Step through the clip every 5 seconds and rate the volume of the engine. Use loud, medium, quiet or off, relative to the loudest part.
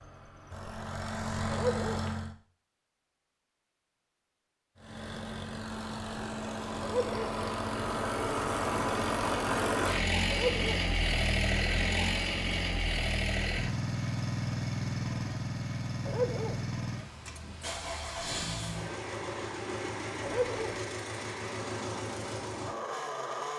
medium, loud, loud, medium, medium.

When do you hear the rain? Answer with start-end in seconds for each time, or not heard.
not heard.